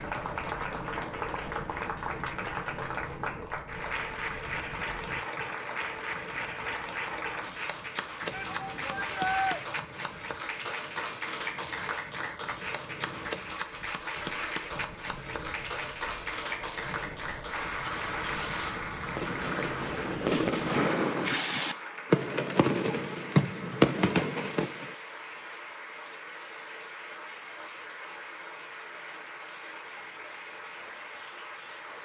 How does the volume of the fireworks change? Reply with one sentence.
The volume of the fireworks goes up.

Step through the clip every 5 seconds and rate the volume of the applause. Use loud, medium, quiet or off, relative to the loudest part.
loud, loud, loud, loud, medium, medium, medium.